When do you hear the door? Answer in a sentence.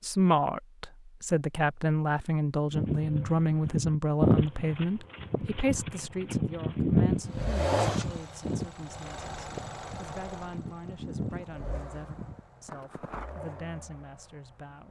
The door can't be heard in this clip.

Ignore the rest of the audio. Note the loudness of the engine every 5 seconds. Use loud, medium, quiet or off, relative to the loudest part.
off, loud, quiet.